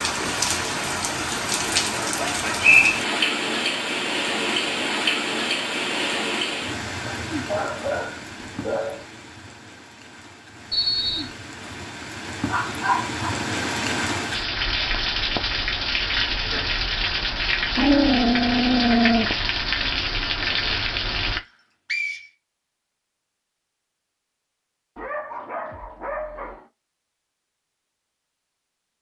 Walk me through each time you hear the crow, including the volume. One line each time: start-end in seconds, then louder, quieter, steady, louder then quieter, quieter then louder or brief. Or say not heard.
not heard.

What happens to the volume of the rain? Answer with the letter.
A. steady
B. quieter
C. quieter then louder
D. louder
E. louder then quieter
C.